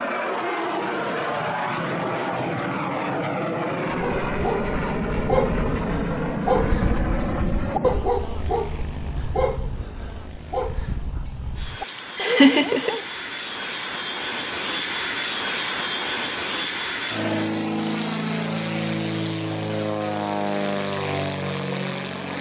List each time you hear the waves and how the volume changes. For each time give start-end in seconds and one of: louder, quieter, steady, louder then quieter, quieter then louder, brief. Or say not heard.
not heard.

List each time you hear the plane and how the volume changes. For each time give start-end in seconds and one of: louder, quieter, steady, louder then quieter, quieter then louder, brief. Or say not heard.
0.0-22.3 quieter then louder.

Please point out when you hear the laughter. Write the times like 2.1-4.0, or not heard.
12.2-12.9.